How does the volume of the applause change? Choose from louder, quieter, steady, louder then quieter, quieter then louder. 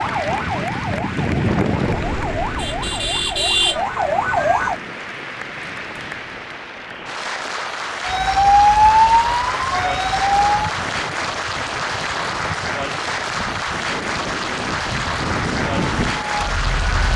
louder.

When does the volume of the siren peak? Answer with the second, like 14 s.
9 s.